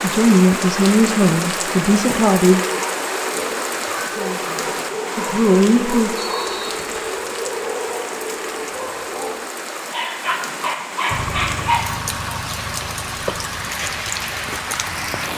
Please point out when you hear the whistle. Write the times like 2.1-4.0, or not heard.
6.2-7.2.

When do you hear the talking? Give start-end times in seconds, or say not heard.
0.0-2.6, 4.1-6.2.